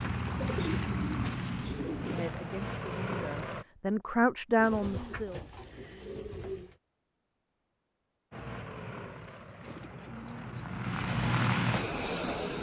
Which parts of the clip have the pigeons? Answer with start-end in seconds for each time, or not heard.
0.3-2.2, 4.5-6.8, 8.7-10.7.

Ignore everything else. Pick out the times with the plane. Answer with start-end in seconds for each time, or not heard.
0.0-3.6, 8.3-12.5.